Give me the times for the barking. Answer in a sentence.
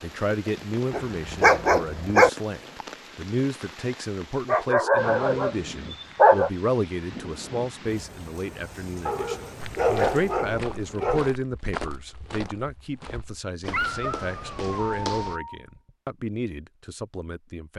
You can hear the barking from 0.9 to 2.3 s, from 4.5 to 6.5 s, from 9.1 to 11.3 s and from 13.7 to 15.7 s.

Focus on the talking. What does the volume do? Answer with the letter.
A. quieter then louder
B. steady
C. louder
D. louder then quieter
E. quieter
B.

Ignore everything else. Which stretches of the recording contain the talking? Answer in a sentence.
You can hear the talking from 0.0 to 17.7 s.